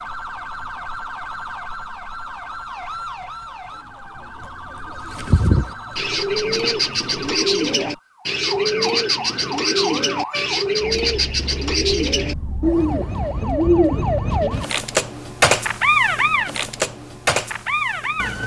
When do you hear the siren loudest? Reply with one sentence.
The loudest moment of the siren is at 16 seconds.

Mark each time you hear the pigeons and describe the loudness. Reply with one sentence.
You can hear the pigeons from 5.0 to 14.6 s, at a steady volume.